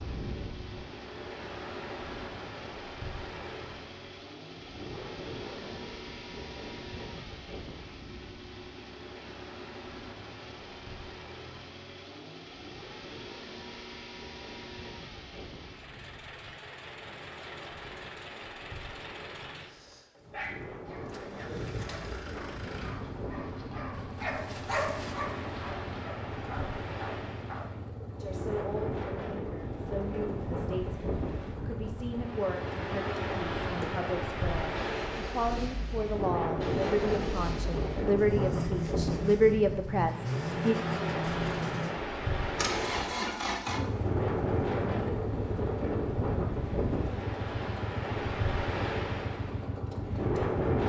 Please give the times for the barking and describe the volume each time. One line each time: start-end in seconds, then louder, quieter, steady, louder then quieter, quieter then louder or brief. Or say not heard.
20.2-27.6 louder then quieter.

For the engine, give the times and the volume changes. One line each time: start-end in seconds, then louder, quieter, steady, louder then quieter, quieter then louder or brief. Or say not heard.
0.0-50.6 louder.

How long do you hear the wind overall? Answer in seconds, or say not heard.
51 s.